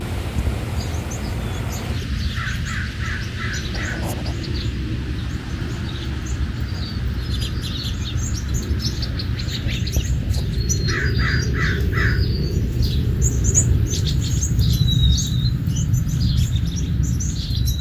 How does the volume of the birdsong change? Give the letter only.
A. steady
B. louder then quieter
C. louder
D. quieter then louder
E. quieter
C.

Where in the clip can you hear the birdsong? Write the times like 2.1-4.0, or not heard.
0.0-17.7.